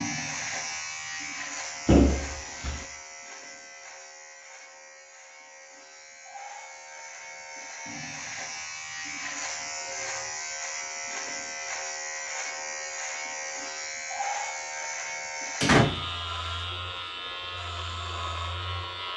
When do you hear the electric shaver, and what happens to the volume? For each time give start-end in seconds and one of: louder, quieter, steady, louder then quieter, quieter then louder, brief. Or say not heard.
0.0-19.1 quieter then louder.